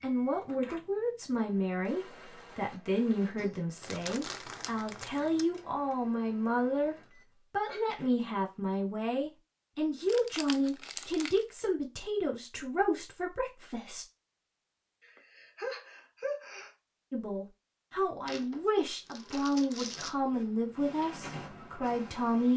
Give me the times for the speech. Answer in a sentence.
You can hear the speech from 0.0 to 14.1 s and from 17.1 to 22.5 s.